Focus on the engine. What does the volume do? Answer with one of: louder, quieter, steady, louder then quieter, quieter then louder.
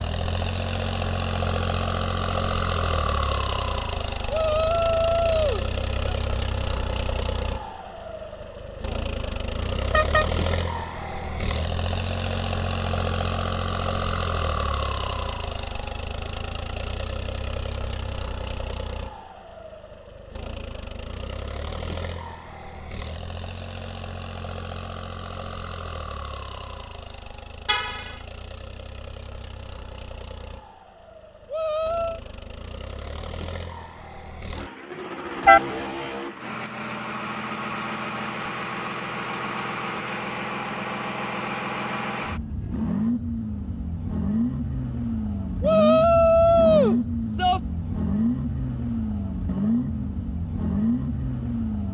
quieter then louder.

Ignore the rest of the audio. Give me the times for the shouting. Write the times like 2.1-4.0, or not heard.
4.2-6.2, 31.5-32.2, 45.6-47.6.